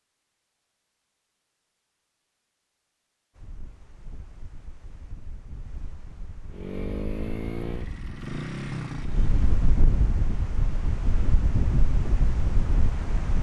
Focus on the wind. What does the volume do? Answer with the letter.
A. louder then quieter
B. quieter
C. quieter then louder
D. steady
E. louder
E.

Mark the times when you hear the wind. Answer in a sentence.
The wind can be heard from 3.4 to 13.3 s.